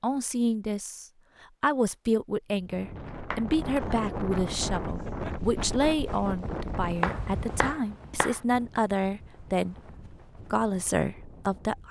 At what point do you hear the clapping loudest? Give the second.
7 s.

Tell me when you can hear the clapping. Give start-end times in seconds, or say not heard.
3.3-4.0, 7.0-8.4.